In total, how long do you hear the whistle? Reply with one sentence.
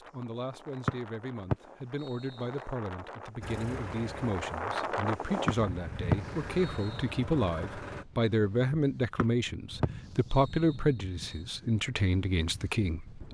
The whistle can be heard for 6 seconds in total.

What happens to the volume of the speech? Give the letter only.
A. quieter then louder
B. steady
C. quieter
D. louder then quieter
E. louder
E.